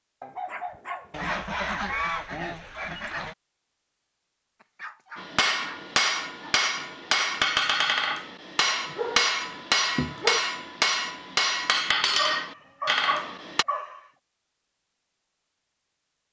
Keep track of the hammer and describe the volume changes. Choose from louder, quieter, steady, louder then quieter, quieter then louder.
steady.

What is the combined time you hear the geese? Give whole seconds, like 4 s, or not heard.
2 s.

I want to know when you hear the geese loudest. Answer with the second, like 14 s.
2 s.